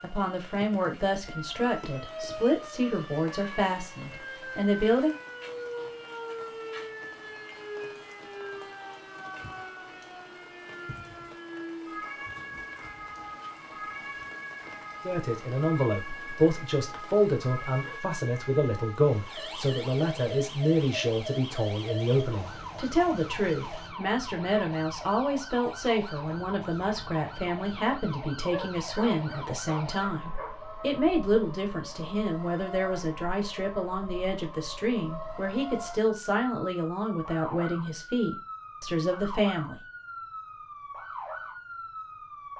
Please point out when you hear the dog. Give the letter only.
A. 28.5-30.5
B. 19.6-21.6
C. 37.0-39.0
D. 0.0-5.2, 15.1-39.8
A.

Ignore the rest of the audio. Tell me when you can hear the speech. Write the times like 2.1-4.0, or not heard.
0.0-5.2, 15.1-39.8.